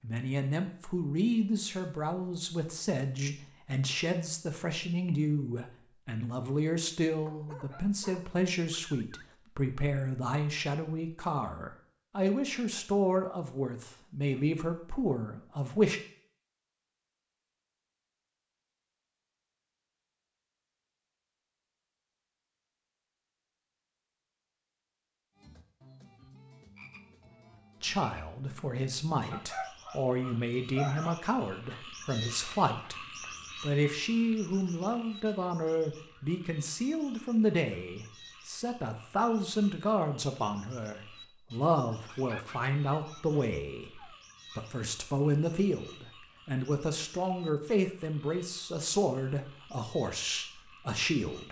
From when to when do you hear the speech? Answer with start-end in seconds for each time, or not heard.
0.0-16.0, 27.8-33.0, 33.6-51.4.